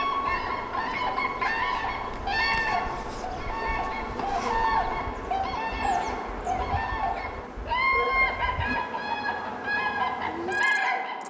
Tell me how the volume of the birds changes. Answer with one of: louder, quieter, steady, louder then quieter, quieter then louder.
steady.